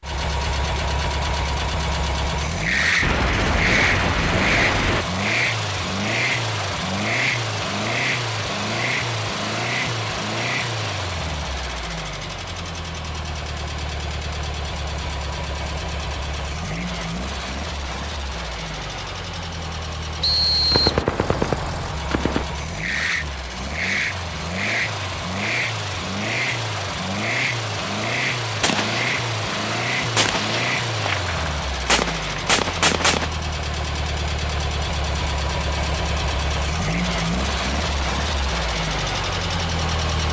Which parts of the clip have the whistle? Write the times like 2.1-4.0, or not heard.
20.2-21.0.